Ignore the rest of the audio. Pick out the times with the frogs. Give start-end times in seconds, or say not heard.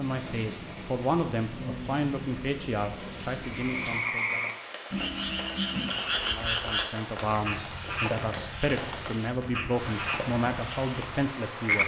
3.4-11.8.